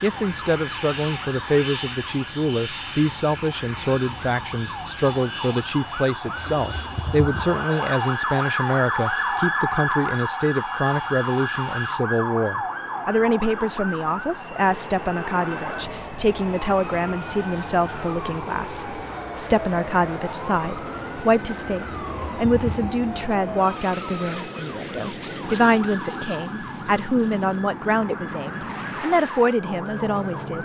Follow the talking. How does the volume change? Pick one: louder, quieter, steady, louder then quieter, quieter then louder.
steady.